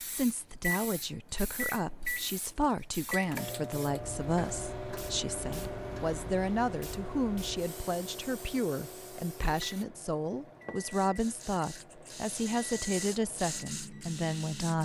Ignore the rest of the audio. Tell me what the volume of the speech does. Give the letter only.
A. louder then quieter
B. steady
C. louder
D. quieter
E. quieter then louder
B.